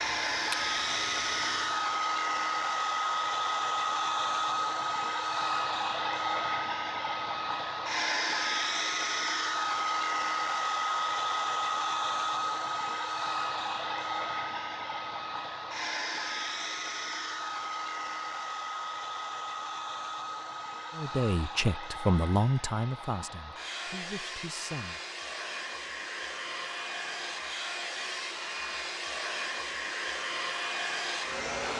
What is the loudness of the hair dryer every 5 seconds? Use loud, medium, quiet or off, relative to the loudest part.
loud, loud, loud, medium, medium, medium, loud.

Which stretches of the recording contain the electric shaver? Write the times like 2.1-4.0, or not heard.
0.0-1.9.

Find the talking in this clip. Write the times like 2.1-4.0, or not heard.
20.9-25.0.